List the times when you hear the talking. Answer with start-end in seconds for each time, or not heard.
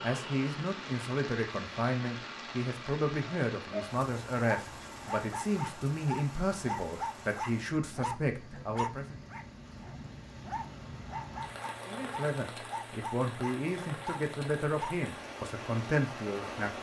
0.0-9.2, 11.8-16.7.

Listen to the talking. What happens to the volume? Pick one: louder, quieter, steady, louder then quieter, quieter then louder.
steady.